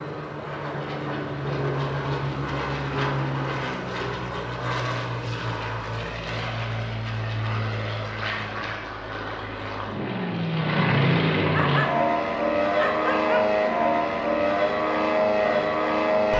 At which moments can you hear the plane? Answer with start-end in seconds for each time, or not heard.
0.0-16.3.